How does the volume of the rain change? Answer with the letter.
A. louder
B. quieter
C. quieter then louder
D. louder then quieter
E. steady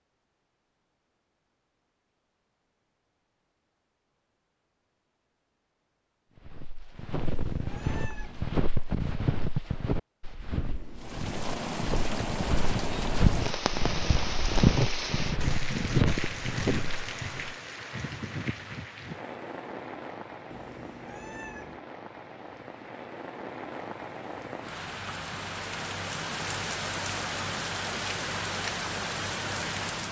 C.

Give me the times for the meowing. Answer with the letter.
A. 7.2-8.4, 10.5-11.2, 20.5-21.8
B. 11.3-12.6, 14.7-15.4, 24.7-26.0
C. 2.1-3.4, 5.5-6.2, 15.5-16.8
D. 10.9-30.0
A.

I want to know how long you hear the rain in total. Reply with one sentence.
You can hear the rain for 19 seconds altogether.